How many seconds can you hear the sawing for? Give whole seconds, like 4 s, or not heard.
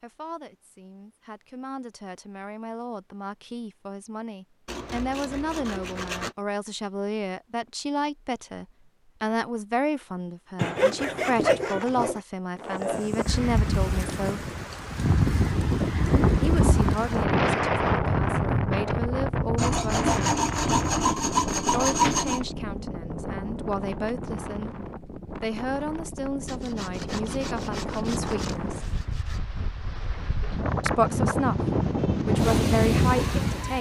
9 s.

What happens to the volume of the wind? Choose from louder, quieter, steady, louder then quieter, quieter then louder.
quieter then louder.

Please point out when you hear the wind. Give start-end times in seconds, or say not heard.
12.6-33.7.